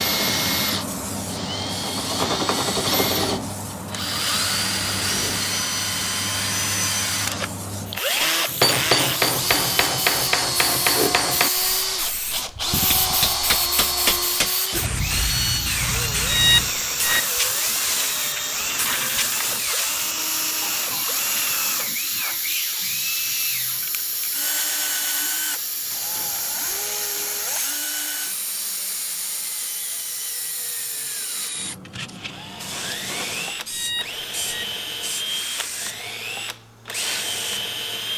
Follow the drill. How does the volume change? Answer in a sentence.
The volume of the drill goes down.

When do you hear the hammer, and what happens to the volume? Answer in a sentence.
The hammer can be heard from 8.4 to 14.5 s, getting quieter then louder.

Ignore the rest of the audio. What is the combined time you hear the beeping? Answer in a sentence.
The beeping can be heard for 2 seconds in total.